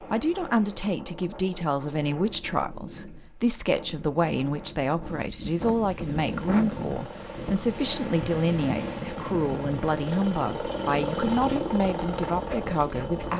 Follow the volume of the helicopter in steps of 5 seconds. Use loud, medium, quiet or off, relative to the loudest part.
off, medium, loud.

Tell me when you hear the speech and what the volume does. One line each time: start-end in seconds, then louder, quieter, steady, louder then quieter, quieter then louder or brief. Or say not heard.
0.0-13.3 steady.